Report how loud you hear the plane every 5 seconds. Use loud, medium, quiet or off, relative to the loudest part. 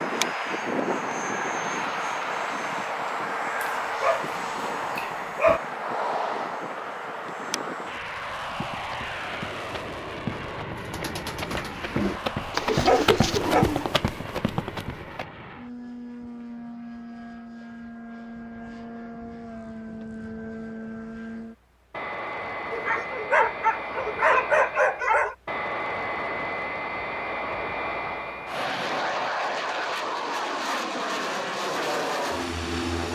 loud, loud, medium, medium, medium, loud, loud.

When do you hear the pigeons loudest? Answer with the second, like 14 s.
13 s.